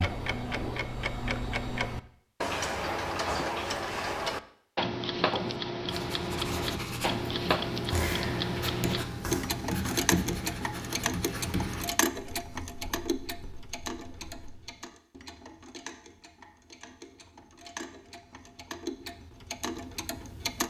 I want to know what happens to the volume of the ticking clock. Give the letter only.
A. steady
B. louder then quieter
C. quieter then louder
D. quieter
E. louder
D.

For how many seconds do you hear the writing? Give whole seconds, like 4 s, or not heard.
9 s.